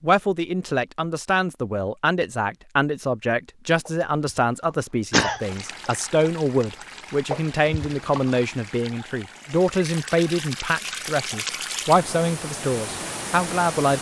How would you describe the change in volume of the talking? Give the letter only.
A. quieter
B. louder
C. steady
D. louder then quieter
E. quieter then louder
C.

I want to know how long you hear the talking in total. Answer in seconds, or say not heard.
14 s.